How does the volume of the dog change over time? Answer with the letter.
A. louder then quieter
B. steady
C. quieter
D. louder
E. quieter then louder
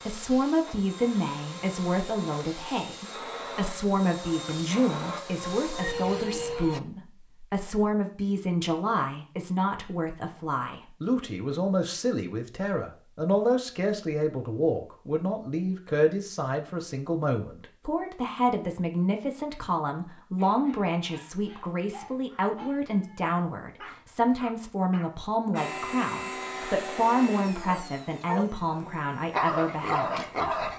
D.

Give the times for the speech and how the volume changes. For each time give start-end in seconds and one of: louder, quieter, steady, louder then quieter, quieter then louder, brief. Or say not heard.
0.1-30.7 steady.